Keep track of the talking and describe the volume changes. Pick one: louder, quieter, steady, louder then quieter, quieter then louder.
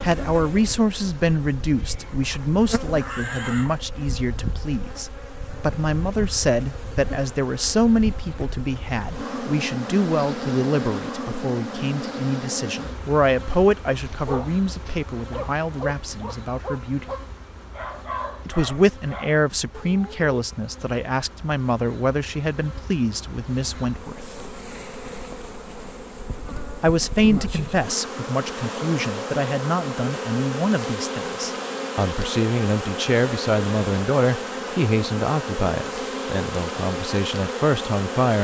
steady.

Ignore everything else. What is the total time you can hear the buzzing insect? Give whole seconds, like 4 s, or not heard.
38 s.